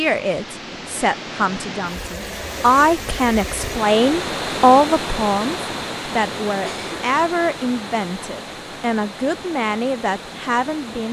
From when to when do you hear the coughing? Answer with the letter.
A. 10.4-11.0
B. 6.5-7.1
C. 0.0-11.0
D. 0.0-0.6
B.